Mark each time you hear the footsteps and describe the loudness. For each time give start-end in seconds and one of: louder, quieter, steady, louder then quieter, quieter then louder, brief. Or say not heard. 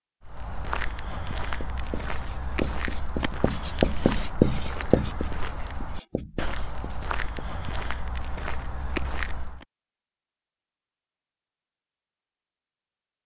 0.2-9.7 steady.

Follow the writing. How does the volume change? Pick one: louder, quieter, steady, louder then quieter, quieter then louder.
louder then quieter.